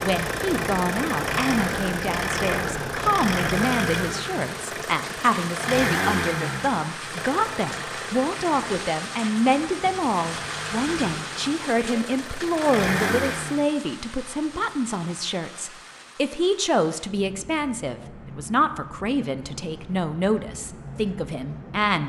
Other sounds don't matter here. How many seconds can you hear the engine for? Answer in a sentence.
The engine can be heard for 14 seconds in total.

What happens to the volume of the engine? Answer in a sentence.
The loudness of the engine goes down, then up.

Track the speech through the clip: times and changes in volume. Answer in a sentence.
The speech can be heard from 0.0 to 22.0 s, at a steady volume.